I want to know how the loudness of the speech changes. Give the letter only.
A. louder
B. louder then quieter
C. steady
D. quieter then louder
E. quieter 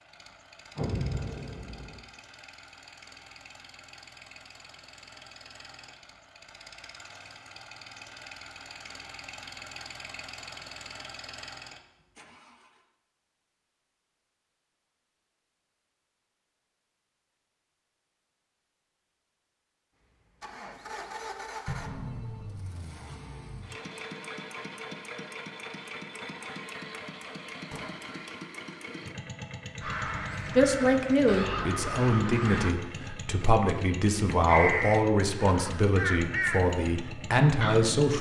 C.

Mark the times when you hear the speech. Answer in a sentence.
The speech can be heard from 30.6 to 38.1 s.